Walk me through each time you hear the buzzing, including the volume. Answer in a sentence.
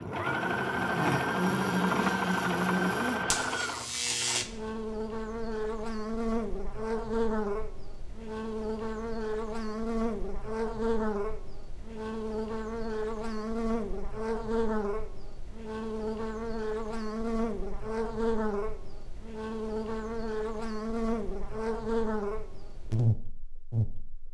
You can hear the buzzing from 0.0 to 24.2 s, at a steady volume.